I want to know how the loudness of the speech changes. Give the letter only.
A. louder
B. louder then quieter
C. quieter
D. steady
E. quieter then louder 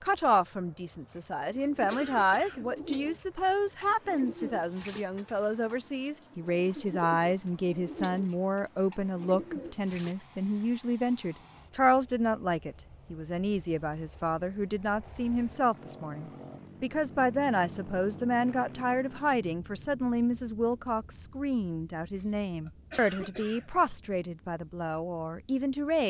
D.